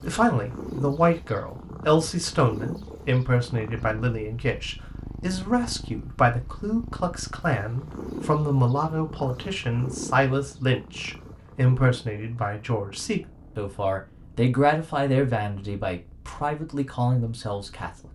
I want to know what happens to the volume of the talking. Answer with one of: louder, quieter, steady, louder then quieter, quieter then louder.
steady.